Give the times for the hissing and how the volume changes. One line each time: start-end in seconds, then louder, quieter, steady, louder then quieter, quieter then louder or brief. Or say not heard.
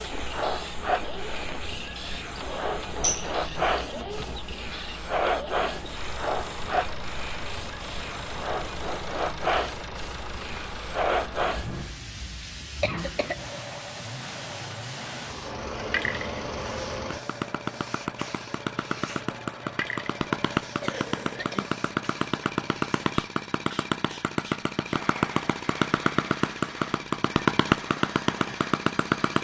0.0-29.1 quieter.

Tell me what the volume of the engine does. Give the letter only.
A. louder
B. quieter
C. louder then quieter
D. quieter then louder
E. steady
A.